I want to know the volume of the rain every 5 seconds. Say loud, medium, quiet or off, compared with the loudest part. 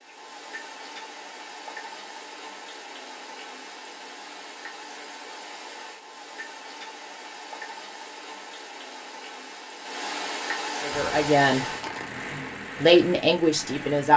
medium, medium, loud.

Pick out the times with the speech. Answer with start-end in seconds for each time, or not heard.
10.8-11.7, 12.8-14.1.